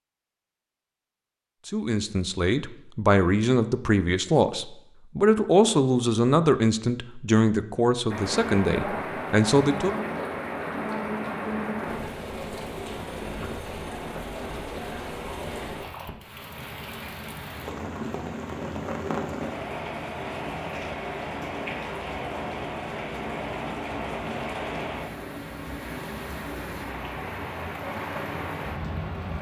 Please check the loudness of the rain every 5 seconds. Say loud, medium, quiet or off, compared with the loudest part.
off, loud, loud, loud, loud, loud.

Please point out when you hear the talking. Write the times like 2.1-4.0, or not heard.
1.6-10.1.